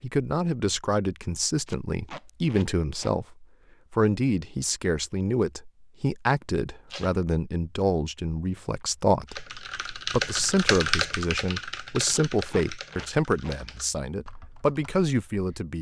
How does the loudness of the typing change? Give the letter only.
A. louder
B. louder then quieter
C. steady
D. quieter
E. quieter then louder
D.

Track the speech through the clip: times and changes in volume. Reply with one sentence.
The speech can be heard from 0.0 to 15.7 s, at a steady volume.